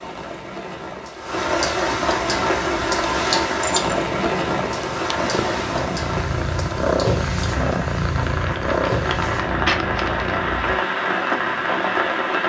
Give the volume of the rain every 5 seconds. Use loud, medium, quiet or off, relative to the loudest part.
loud, medium, loud.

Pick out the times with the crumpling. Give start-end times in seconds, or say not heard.
8.2-10.3.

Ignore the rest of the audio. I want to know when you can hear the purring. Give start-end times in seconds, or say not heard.
2.2-10.8.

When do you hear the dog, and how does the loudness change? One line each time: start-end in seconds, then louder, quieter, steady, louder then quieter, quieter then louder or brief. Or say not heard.
not heard.